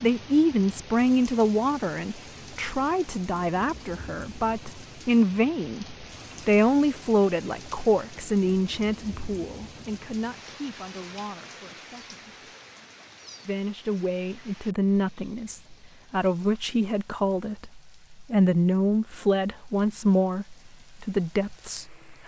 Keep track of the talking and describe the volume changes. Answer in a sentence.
The volume of the talking goes down, then up.